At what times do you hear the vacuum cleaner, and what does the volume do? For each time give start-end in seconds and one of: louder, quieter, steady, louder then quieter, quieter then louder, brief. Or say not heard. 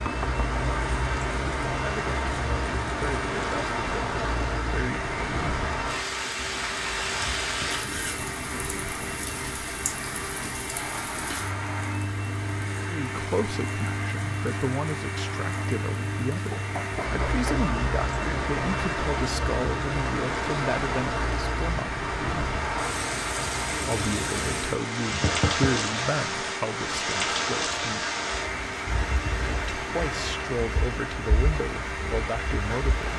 0.0-33.1 steady.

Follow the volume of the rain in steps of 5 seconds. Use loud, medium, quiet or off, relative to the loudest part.
loud, loud, medium, loud, loud, loud, medium.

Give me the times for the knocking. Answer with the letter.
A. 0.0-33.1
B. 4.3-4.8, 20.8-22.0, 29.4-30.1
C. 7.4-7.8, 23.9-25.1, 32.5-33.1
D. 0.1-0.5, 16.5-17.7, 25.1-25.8
D.